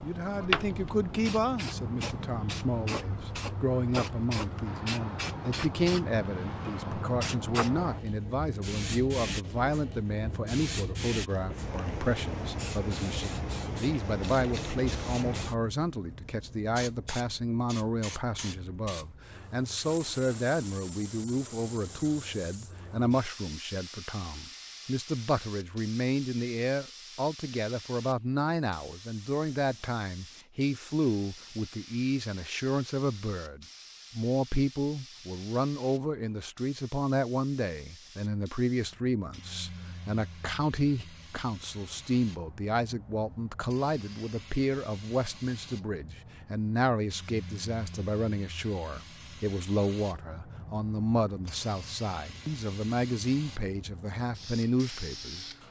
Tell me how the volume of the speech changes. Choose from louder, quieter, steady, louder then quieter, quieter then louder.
steady.